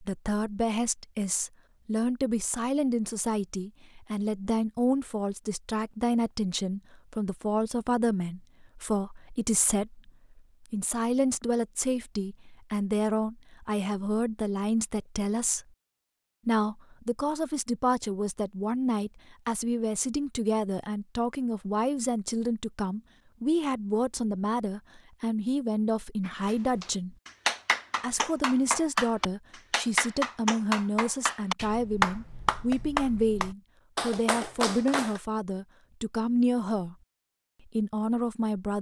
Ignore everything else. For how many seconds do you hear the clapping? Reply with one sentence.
The clapping can be heard for 9 seconds in total.